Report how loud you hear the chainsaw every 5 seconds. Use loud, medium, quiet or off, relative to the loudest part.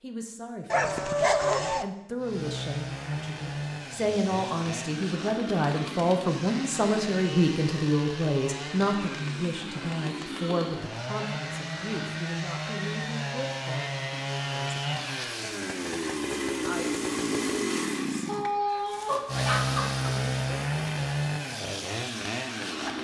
medium, medium, loud, loud, loud.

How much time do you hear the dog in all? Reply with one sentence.
The dog can be heard for 3 seconds in total.